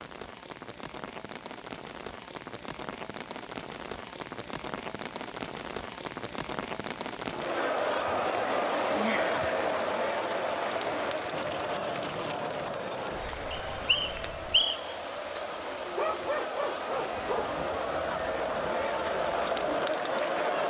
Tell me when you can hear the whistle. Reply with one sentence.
The whistle can be heard from 13.5 to 14.9 s.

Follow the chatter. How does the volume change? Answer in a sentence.
The loudness of the chatter goes down, then up.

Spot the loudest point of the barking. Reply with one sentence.
The volume of the barking peaks at 16 seconds.